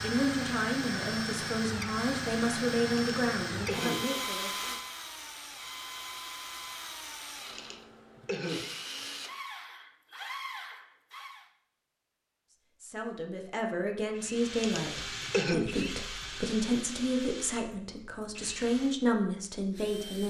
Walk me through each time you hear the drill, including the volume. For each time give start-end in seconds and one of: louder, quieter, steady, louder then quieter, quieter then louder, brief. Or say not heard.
0.0-11.5 quieter
14.1-20.2 quieter.